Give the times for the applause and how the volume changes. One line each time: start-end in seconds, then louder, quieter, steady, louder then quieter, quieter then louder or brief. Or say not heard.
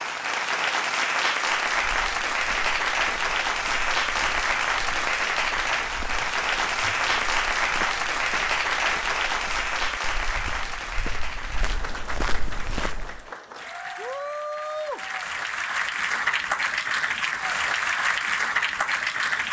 0.0-19.4 quieter then louder.